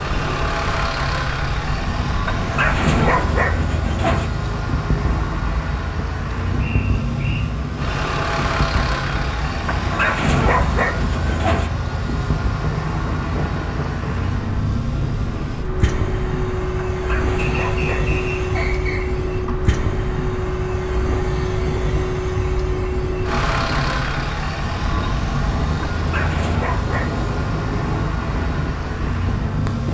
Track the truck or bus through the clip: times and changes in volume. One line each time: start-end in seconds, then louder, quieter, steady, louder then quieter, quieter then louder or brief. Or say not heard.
0.0-29.8 steady.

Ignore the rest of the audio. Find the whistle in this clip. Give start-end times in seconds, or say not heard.
6.5-7.5, 17.4-19.2.